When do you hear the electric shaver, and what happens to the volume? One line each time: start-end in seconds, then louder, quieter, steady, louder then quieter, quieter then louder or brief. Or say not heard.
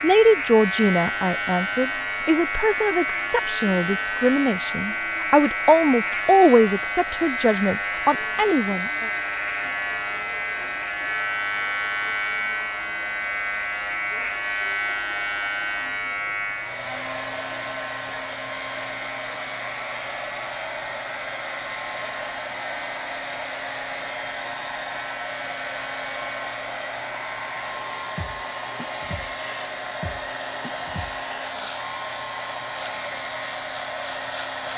0.0-34.7 quieter.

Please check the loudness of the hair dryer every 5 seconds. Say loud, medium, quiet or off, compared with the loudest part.
medium, medium, medium, loud, loud, loud, loud.